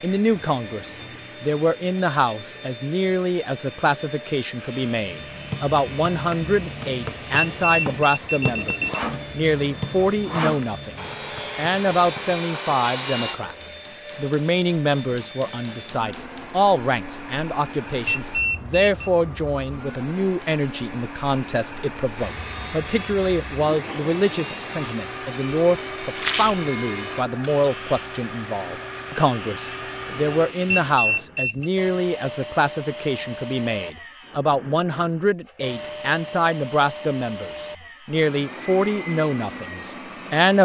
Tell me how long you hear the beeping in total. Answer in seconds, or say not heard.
4 s.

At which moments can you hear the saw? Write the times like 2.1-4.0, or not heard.
4.5-13.4, 22.1-31.0.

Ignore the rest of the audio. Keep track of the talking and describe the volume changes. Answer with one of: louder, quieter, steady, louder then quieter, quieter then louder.
steady.